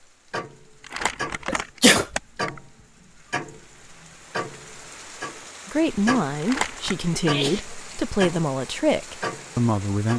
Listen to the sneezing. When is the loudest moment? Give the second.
2 s.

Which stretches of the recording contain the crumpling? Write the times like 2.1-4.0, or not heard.
0.8-2.6, 6.4-7.0.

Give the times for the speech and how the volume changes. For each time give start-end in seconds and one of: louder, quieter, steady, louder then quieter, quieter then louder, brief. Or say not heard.
5.7-10.1 steady.